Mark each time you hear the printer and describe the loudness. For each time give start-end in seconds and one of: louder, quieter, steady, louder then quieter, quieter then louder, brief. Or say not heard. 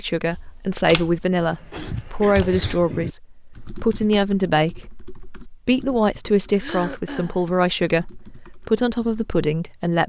not heard.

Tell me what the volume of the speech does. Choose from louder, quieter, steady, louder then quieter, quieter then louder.
steady.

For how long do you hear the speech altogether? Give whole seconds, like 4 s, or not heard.
10 s.